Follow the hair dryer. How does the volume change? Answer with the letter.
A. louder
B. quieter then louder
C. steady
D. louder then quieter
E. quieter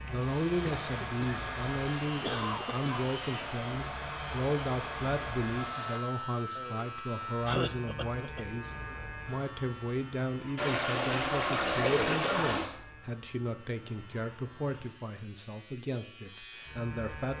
C.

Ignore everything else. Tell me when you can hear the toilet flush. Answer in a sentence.
The toilet flush can be heard from 10.6 to 12.7 s.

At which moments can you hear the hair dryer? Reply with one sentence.
You can hear the hair dryer from 0.0 to 6.0 s.